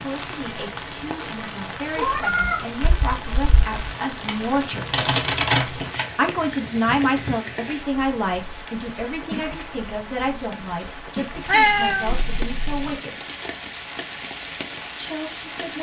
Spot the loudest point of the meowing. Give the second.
12 s.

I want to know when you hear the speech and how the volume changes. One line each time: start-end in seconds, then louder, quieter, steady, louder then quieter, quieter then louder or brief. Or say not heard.
0.0-5.0 louder
6.2-13.2 quieter
14.9-15.7 brief.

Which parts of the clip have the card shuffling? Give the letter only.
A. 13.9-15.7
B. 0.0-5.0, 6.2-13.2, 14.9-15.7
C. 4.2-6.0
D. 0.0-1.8
C.